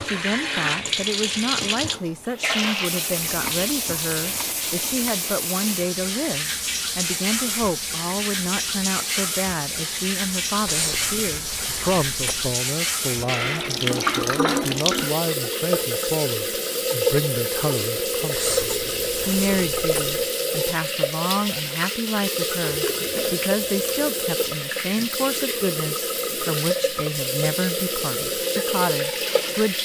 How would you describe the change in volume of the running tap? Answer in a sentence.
The loudness of the running tap stays about the same.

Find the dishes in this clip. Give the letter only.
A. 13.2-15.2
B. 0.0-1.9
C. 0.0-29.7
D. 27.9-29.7
A.